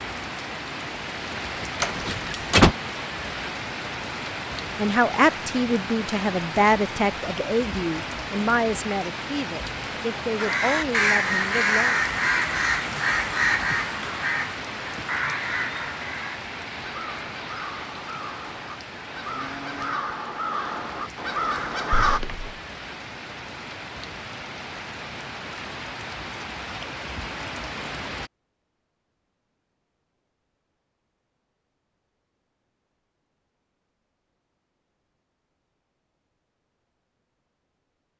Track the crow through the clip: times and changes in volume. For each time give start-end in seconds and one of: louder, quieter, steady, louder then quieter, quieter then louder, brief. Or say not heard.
10.3-22.2 quieter then louder.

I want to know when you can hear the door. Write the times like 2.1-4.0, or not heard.
1.8-2.8, 21.9-22.6.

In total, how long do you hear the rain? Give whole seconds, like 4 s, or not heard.
28 s.